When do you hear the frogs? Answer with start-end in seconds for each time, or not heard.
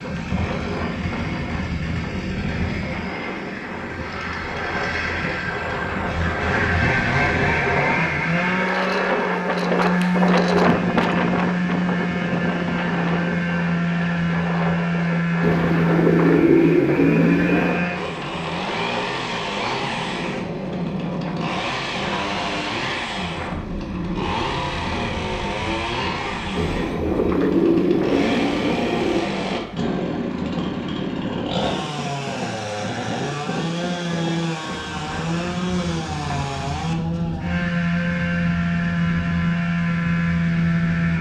not heard.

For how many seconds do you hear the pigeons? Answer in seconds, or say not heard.
5 s.